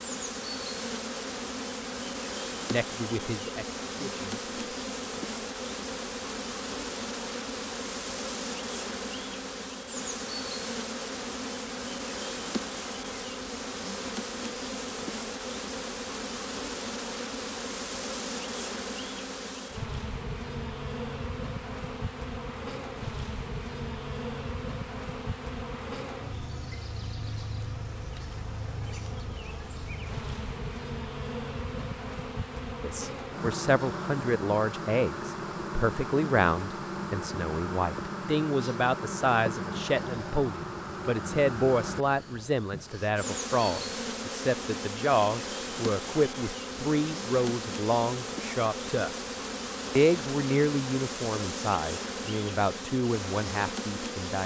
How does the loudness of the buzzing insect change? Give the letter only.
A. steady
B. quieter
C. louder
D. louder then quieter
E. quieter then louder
A.